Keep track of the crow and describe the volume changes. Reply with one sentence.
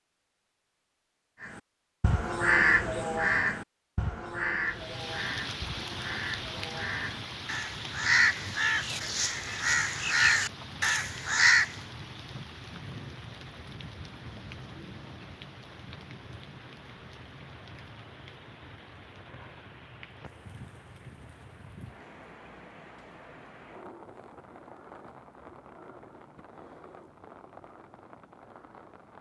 The loudness of the crow goes down, then up.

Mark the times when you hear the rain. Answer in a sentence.
You can hear the rain from 4.7 to 29.1 s.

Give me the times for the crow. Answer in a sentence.
You can hear the crow from 1.4 to 11.8 s.